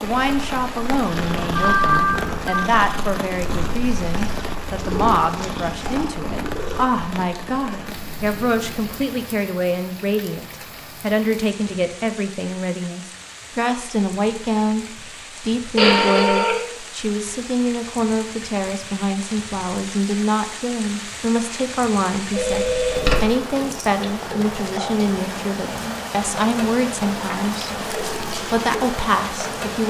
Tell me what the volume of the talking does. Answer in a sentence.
The volume of the talking stays about the same.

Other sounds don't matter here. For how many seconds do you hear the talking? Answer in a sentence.
You can hear the talking for 30 seconds altogether.